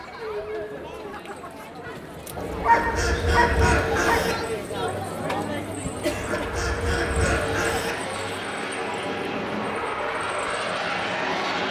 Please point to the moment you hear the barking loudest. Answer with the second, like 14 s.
3 s.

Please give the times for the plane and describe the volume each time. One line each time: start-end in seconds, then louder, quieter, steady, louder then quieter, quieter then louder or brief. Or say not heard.
6.0-11.6 louder.